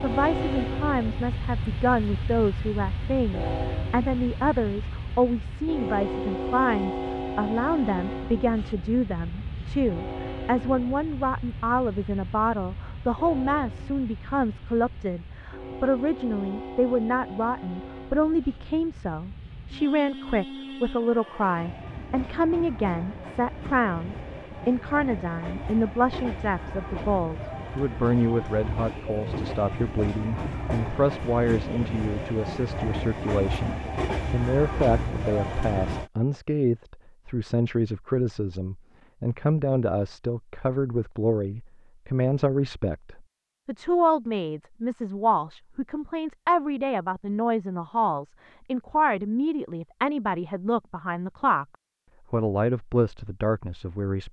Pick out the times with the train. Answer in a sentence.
The train can be heard from 0.0 to 36.1 s.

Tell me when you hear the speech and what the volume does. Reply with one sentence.
You can hear the speech from 0.0 to 51.6 s, at a steady volume; and briefly from 52.3 to 54.2 s.